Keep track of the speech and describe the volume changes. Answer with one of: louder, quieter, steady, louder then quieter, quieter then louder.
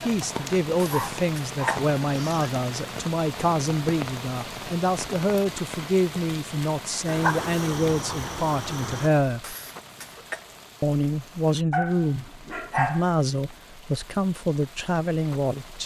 steady.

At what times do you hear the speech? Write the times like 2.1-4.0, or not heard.
0.0-9.6, 10.8-15.8.